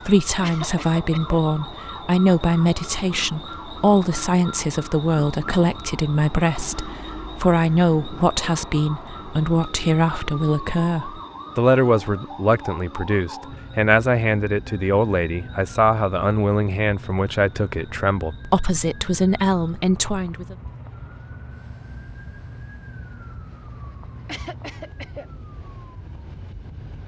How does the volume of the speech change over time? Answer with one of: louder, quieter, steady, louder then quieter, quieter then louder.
steady.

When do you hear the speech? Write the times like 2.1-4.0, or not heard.
0.1-20.6.